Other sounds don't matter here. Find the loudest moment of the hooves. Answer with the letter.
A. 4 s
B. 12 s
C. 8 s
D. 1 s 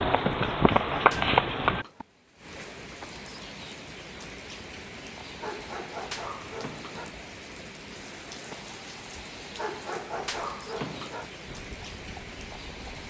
D.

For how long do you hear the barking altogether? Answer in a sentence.
The barking can be heard for 5 seconds in total.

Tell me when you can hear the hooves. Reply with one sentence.
The hooves can be heard from 0.0 to 2.0 s and from 11.4 to 13.0 s.